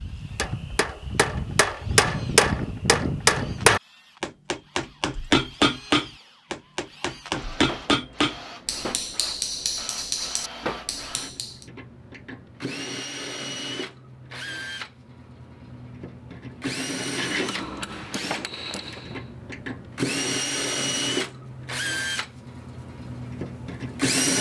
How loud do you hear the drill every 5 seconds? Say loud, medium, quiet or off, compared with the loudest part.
quiet, quiet, medium, medium, loud.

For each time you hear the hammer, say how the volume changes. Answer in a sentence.
The hammer can be heard from 0.0 to 11.7 s, getting quieter; and briefly from 17.1 to 19.3 s.